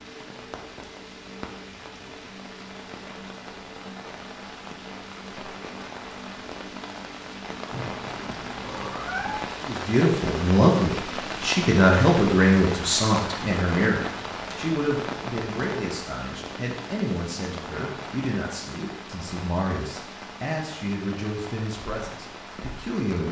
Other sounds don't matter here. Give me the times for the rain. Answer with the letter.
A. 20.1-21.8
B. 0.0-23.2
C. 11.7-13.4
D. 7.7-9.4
B.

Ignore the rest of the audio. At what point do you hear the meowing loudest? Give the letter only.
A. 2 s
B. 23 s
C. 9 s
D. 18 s
C.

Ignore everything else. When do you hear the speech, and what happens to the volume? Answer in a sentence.
You can hear the speech from 9.6 to 23.2 s, getting quieter.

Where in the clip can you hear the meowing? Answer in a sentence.
The meowing can be heard from 7.7 to 9.4 s.